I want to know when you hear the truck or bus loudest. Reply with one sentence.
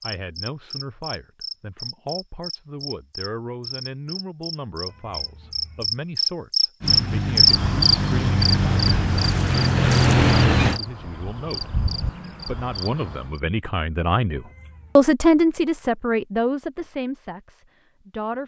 The loudest moment of the truck or bus is at 10 seconds.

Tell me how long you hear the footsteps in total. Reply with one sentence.
You can't hear the footsteps here.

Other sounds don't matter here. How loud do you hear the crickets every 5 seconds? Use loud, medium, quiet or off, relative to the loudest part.
quiet, loud, quiet, off.